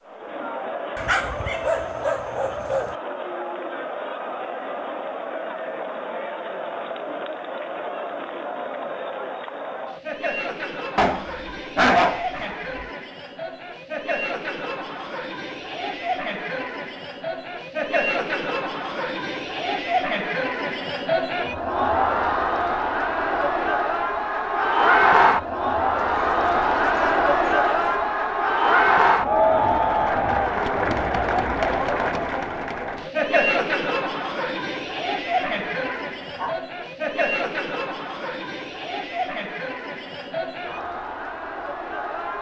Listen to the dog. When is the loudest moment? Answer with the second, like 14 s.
12 s.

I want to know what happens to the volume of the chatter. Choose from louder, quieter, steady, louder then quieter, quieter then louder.
louder then quieter.